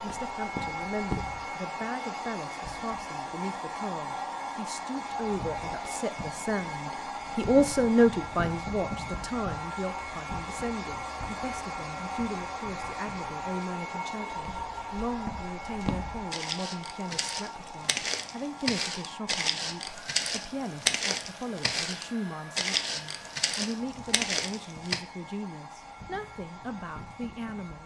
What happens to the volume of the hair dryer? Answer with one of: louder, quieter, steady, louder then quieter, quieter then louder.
quieter.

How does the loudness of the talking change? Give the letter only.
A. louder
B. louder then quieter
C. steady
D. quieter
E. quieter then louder
B.